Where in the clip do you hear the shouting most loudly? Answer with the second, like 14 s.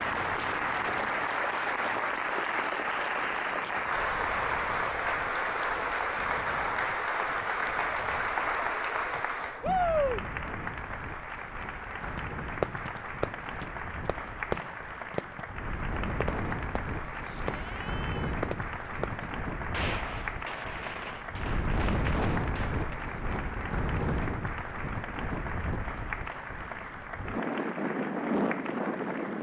10 s.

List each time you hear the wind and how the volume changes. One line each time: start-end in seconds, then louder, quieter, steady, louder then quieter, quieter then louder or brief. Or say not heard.
0.0-29.3 louder.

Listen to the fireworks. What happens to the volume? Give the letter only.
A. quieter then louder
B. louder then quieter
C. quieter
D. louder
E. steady
C.